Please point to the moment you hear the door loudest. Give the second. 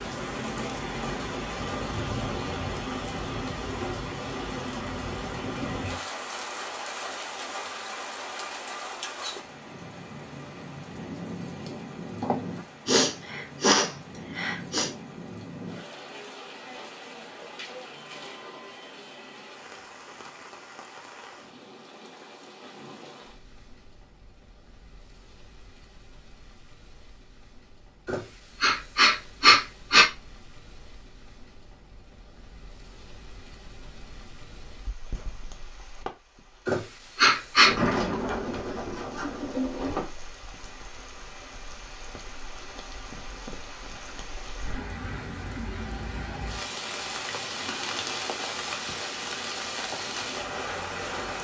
38 s.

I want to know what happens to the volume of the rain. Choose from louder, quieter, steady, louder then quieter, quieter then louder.
quieter then louder.